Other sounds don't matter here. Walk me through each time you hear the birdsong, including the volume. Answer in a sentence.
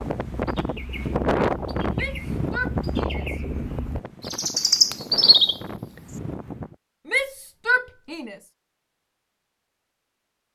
You can hear the birdsong from 0.2 to 6.2 s, getting louder.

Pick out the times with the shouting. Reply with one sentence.
You can hear the shouting from 1.9 to 3.4 s and from 7.0 to 8.3 s.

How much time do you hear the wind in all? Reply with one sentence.
The wind can be heard for 7 seconds in total.